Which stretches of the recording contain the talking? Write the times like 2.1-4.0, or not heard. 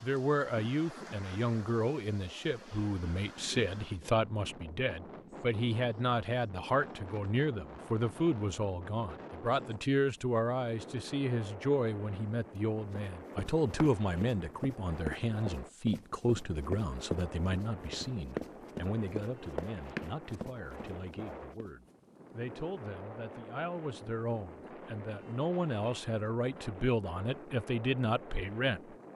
0.0-28.9.